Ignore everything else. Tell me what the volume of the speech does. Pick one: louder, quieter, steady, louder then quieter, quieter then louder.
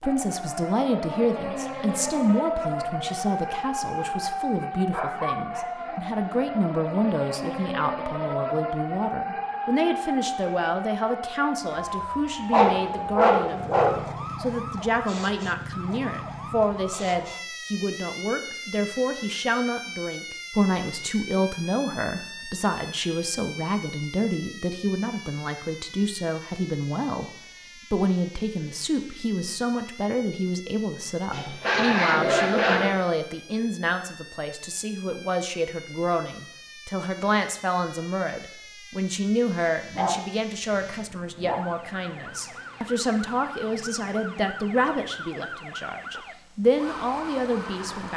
steady.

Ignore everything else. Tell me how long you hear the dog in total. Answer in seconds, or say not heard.
6 s.